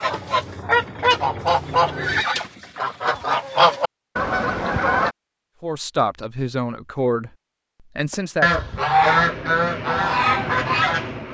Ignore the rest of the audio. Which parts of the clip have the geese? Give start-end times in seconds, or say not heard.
0.0-5.2, 8.1-11.3.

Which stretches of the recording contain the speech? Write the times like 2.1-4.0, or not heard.
5.6-7.3, 8.0-8.5.